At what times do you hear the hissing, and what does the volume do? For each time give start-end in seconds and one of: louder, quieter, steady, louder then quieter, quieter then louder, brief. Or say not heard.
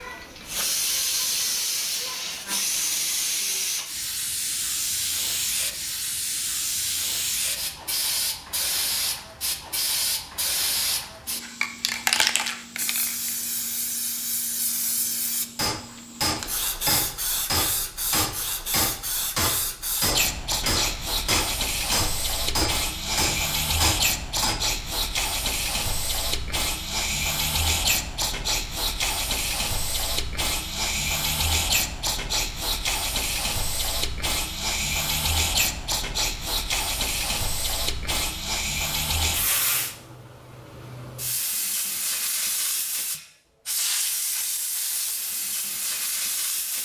0.0-46.8 steady.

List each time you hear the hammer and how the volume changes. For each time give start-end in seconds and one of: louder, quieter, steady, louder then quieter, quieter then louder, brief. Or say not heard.
15.6-24.6 steady.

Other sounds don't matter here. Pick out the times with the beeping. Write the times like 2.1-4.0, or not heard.
not heard.